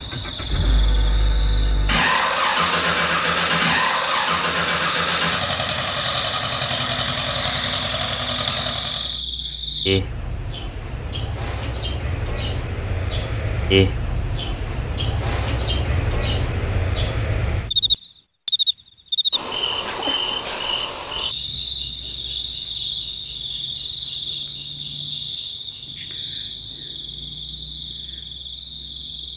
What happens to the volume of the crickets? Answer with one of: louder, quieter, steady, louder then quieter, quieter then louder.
louder then quieter.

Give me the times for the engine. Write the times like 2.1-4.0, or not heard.
0.0-9.2.